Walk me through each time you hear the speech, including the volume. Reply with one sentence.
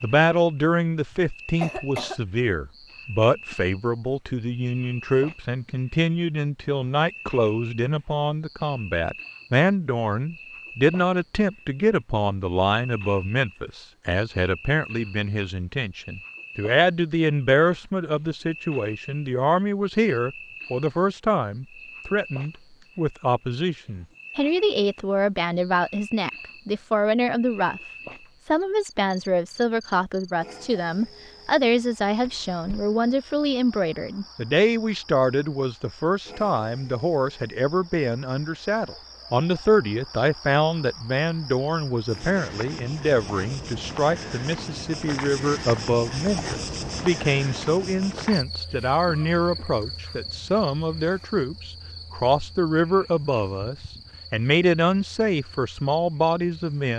The speech can be heard from 0.0 to 27.8 s, at a steady volume; and from 28.4 to 56.9 s, at a steady volume.